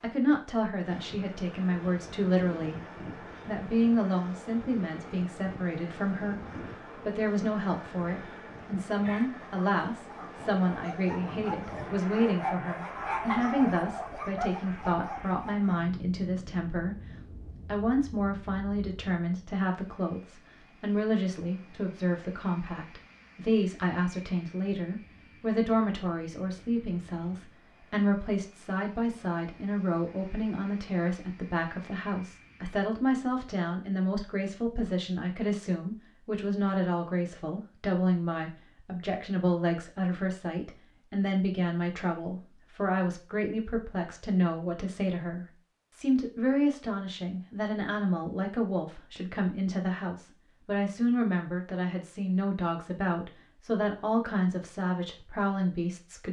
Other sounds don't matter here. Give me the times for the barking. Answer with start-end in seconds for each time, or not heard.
9.1-15.7.